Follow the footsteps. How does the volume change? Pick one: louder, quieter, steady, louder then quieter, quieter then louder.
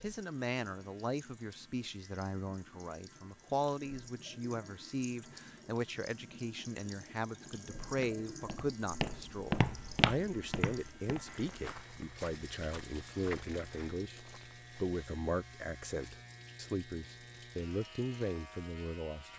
quieter.